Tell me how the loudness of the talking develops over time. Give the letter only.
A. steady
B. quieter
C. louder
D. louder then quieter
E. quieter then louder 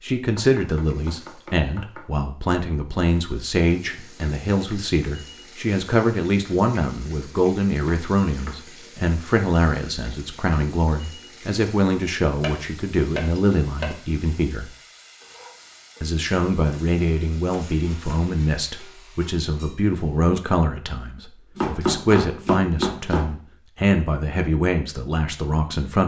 A.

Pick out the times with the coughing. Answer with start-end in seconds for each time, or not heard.
not heard.